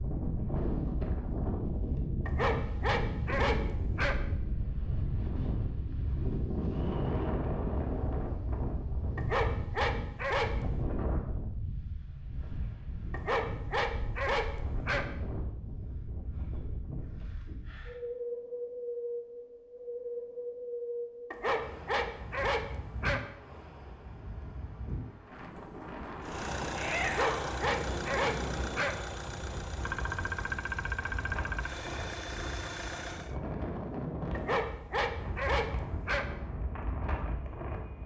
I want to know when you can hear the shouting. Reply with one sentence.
You can hear the shouting from 26.8 to 27.6 s.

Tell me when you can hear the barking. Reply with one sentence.
The barking can be heard from 2.2 to 4.2 s, from 9.2 to 10.7 s, from 13.1 to 15.1 s, from 21.3 to 23.2 s, from 27.0 to 28.9 s and from 34.3 to 36.2 s.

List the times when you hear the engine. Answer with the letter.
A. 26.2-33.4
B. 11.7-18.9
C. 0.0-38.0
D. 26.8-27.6
A.